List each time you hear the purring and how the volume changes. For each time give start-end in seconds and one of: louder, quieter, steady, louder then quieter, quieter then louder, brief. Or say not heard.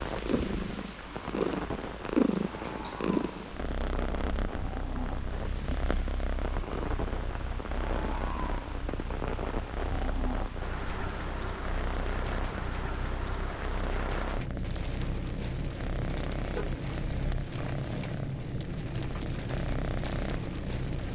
0.0-21.1 quieter.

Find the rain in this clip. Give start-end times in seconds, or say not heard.
0.0-21.1.